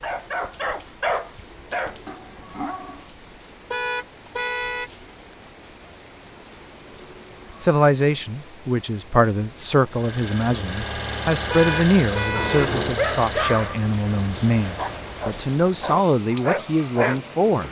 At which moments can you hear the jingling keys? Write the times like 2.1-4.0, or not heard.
1.2-2.6, 6.4-7.7, 12.3-13.0.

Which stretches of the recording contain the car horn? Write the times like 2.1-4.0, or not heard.
3.7-4.9, 11.5-12.7.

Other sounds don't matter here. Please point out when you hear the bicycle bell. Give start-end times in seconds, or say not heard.
not heard.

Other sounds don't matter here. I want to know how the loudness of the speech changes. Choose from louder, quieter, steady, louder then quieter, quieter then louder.
steady.